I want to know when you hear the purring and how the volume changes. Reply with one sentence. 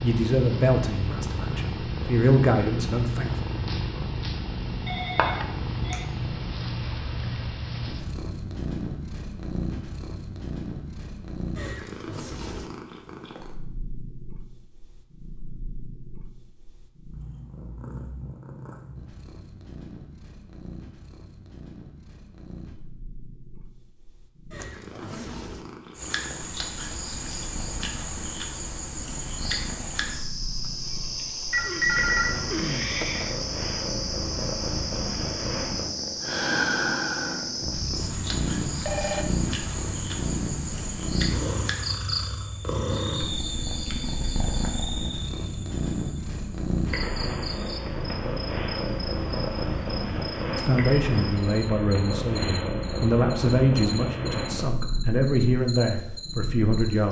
The purring can be heard from 0.0 to 57.0 s, getting quieter then louder.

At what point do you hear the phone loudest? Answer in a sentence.
The volume of the phone peaks at 32 seconds.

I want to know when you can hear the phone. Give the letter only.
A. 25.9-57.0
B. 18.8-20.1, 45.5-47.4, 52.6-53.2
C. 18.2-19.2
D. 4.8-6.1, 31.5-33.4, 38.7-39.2
D.